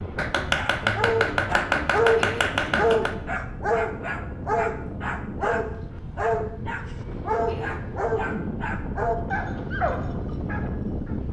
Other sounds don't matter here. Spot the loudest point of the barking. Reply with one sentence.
The volume of the barking peaks at 2 seconds.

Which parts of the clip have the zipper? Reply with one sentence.
The zipper can't be heard in this clip.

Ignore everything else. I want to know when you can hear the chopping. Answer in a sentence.
You can hear the chopping from 0.1 to 3.1 s.